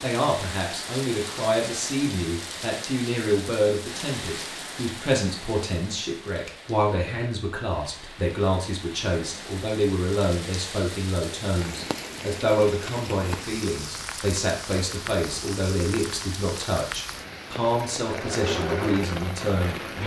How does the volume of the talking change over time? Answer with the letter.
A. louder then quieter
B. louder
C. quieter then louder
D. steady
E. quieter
D.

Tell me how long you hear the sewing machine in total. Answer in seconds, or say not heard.
2 s.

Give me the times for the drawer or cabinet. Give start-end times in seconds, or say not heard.
not heard.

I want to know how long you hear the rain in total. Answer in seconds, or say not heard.
20 s.